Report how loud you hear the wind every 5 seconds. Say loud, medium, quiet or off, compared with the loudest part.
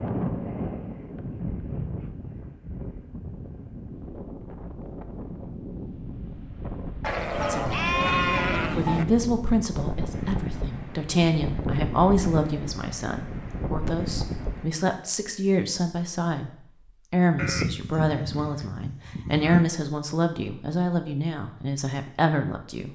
loud, loud, loud, off, off.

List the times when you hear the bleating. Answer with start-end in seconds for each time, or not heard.
7.0-9.1, 17.4-19.6.